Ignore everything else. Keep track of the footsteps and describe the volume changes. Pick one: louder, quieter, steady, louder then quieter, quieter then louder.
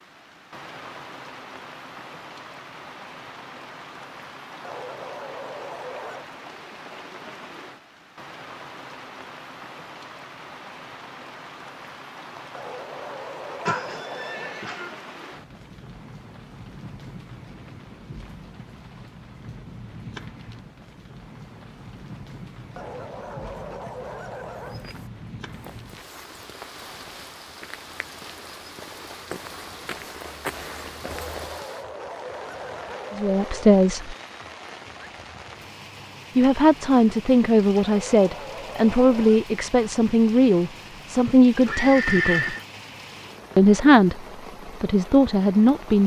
louder.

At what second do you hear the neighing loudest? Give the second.
42 s.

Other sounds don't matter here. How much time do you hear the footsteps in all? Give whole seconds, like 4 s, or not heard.
7 s.